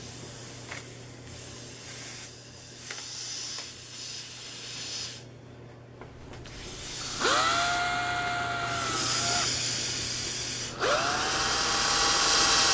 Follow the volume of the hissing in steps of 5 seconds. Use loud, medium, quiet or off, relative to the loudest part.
medium, loud, loud.